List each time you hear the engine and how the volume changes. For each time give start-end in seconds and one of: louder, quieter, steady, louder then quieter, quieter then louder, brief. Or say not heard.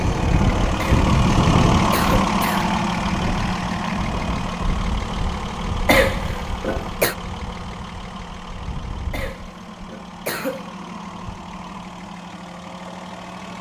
0.0-13.5 quieter.